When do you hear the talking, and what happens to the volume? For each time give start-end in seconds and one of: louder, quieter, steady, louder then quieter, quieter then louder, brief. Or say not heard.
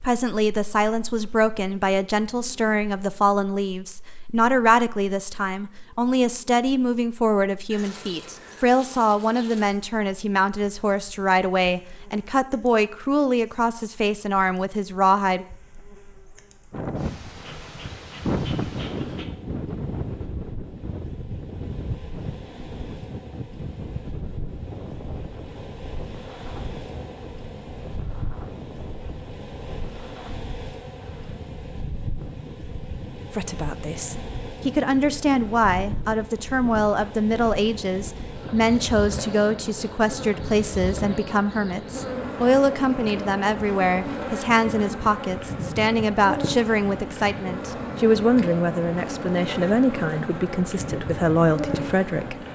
0.0-15.4 steady
33.4-52.4 steady.